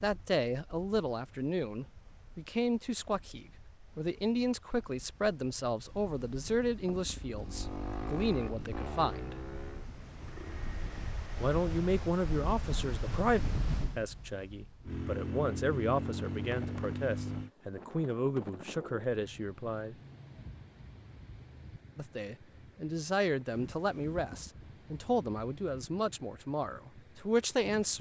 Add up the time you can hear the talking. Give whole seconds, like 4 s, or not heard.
24 s.